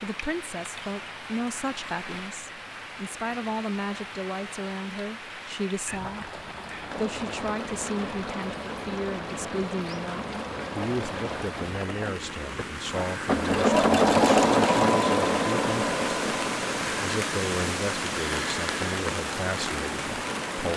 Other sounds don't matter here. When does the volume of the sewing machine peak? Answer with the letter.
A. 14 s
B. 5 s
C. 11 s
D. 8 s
A.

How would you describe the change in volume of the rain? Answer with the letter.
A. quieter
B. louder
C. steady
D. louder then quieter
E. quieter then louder
B.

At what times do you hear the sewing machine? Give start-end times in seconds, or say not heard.
6.8-20.7.